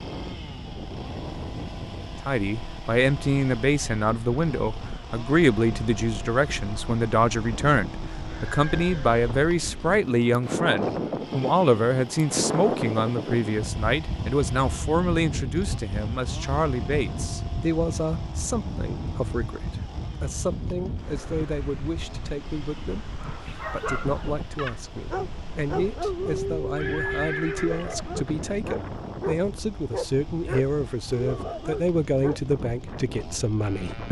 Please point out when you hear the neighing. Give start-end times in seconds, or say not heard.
8.3-9.1, 26.8-28.4.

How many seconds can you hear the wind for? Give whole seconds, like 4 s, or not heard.
34 s.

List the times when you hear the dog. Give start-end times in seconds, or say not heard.
23.2-32.4.